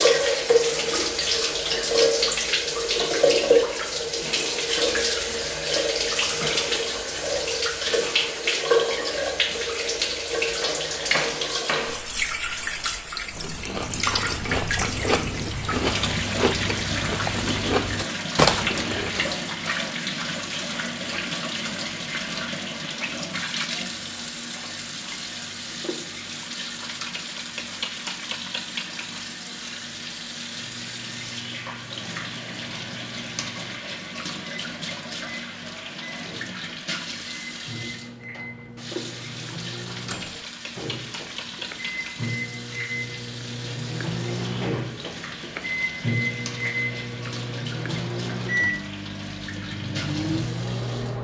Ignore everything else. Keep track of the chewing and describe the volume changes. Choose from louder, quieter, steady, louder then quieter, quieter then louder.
louder.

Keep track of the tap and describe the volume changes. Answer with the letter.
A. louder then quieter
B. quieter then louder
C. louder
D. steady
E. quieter
E.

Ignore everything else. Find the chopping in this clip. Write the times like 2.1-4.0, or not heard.
10.6-11.9.